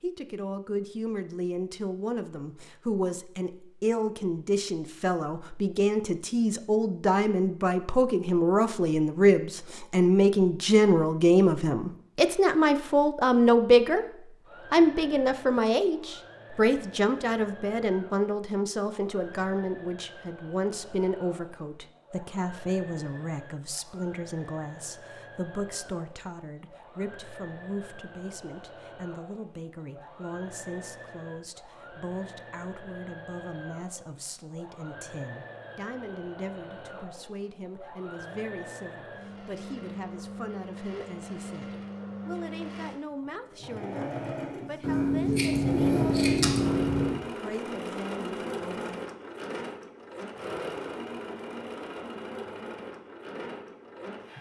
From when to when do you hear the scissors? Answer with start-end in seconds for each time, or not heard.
44.8-47.2.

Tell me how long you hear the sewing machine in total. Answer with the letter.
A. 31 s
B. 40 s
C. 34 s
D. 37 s
B.